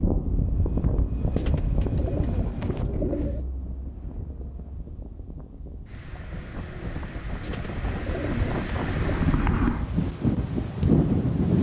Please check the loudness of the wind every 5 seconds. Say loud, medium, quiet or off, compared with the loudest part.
medium, medium, loud.